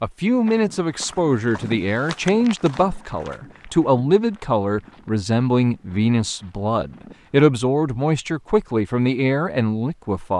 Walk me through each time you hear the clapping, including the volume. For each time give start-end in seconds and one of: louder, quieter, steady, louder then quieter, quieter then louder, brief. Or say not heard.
not heard.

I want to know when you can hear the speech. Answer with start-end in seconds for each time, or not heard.
0.0-10.3.